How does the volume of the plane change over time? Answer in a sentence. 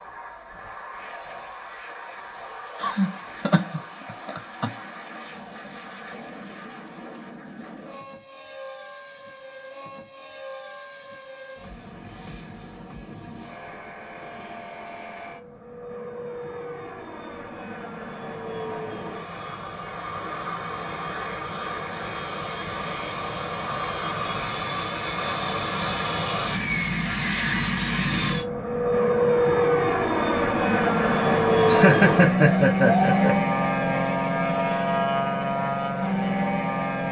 The volume of the plane goes up.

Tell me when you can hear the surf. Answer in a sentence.
The surf can't be heard in this clip.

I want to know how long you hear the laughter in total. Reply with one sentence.
You can hear the laughter for 4 seconds altogether.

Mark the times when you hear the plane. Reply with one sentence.
You can hear the plane from 0.0 to 37.0 s.